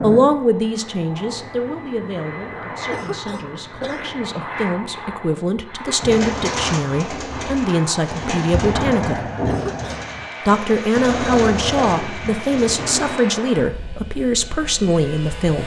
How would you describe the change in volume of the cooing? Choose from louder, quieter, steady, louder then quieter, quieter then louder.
steady.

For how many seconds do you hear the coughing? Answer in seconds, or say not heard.
2 s.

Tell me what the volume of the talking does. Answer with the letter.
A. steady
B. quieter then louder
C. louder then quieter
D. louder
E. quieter
B.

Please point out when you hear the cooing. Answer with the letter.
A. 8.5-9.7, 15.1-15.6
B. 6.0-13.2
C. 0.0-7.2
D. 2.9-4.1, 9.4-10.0
B.